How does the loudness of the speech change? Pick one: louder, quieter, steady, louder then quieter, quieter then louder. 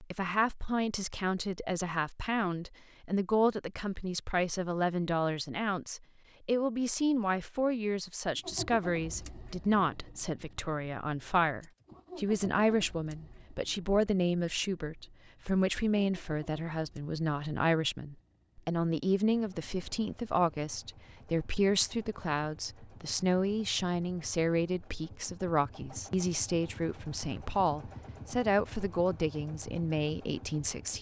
steady.